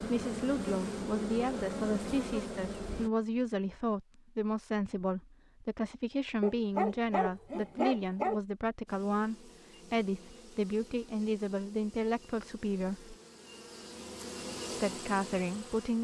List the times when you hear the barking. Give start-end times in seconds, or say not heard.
6.4-8.4.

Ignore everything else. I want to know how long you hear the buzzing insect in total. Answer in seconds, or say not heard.
10 s.